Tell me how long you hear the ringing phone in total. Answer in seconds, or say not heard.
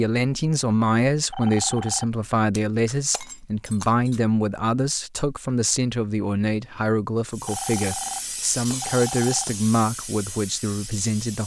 3 s.